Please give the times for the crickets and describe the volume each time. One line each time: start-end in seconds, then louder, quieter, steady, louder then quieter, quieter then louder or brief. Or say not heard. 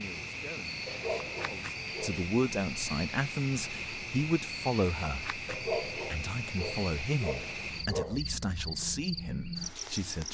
0.0-10.2 steady.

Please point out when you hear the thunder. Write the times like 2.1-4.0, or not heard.
not heard.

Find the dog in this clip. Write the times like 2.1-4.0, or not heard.
0.8-2.3, 5.5-8.2.